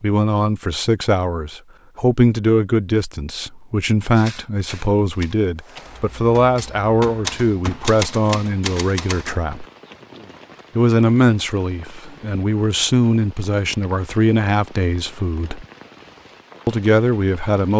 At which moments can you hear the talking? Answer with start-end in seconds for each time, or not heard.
0.0-9.7, 10.8-15.7, 16.6-17.7.